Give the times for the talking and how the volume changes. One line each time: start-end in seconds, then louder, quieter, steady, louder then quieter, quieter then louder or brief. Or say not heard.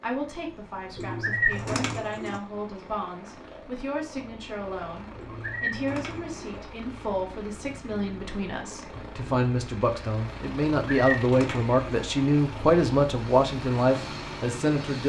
0.0-15.0 louder.